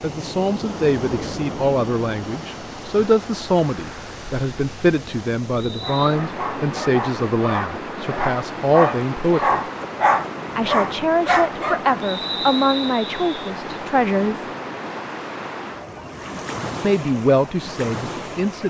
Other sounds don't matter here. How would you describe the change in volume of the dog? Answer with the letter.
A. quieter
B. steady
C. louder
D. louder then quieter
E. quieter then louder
C.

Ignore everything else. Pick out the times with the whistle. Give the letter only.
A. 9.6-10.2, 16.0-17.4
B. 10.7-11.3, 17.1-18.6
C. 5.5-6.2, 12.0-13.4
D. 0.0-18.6
C.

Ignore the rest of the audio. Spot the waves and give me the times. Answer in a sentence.
You can hear the waves from 0.0 to 18.6 s.